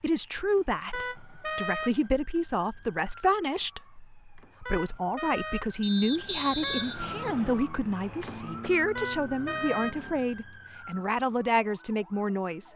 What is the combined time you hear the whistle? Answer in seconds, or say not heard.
2 s.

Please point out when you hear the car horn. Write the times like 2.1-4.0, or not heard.
0.9-2.1, 4.7-6.9, 8.9-10.3.